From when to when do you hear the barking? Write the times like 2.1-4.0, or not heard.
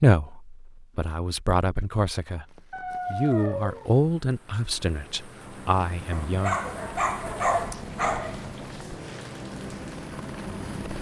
2.7-3.9, 6.1-8.4.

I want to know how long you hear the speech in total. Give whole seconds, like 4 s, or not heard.
6 s.